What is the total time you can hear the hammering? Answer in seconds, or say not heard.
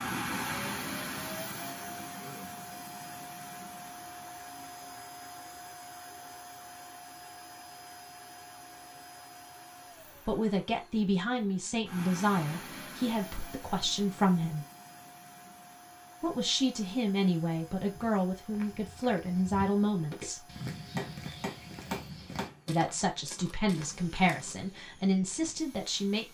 2 s.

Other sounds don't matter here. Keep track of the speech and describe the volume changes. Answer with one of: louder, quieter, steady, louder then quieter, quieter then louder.
steady.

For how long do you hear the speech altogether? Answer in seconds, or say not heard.
12 s.